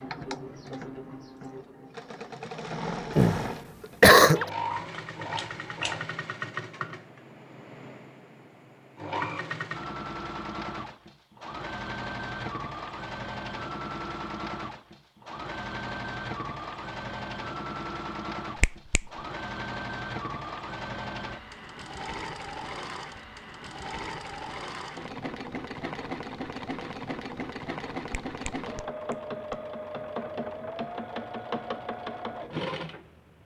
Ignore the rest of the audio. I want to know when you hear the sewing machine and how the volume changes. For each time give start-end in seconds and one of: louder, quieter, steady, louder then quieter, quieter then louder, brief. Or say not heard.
0.0-33.4 steady.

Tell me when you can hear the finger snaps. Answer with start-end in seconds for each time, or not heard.
4.7-6.0, 18.6-19.1, 28.2-29.6.